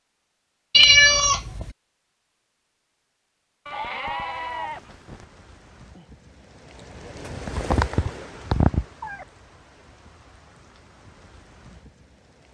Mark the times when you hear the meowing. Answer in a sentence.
The meowing can be heard from 0.7 to 1.7 s and from 7.2 to 9.2 s.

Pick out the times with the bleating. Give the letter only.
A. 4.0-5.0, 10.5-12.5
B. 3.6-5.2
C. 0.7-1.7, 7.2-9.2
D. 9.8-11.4
B.